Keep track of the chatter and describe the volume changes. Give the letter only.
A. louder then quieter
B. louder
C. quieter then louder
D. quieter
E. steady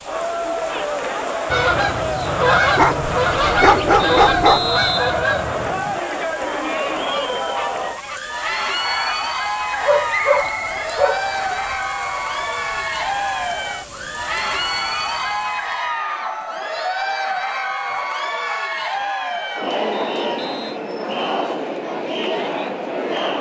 E.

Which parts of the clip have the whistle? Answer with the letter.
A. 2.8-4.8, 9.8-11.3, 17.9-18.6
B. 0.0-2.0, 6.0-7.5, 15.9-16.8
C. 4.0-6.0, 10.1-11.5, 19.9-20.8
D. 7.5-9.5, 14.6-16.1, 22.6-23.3
C.